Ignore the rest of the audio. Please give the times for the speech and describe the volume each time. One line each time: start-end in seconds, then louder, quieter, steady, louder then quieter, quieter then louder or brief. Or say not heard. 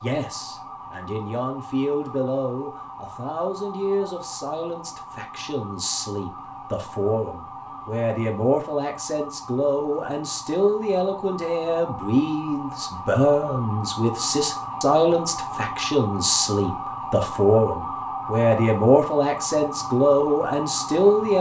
0.0-21.3 louder.